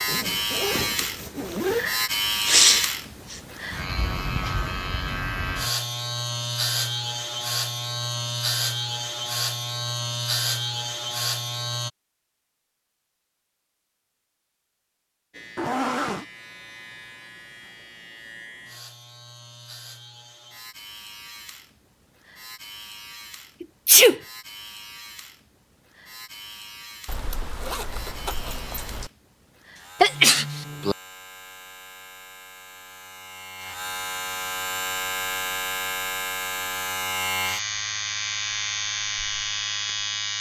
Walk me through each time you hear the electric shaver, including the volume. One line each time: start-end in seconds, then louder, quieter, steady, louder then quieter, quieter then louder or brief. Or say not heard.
0.0-11.9 steady
15.3-40.3 louder.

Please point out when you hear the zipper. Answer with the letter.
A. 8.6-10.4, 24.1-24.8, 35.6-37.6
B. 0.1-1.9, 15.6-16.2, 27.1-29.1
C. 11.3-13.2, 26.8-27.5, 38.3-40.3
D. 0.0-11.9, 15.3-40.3
B.